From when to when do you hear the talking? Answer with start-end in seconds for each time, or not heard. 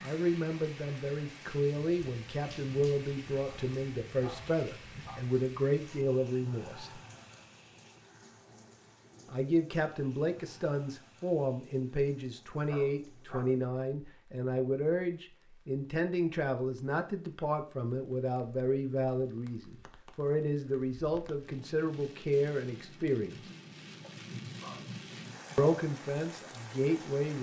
0.0-7.0, 9.2-23.4, 25.6-27.3.